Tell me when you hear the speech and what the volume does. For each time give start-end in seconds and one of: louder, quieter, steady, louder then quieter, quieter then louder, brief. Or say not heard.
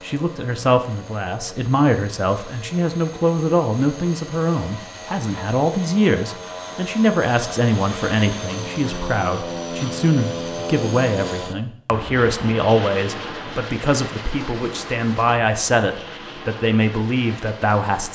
0.0-18.1 steady.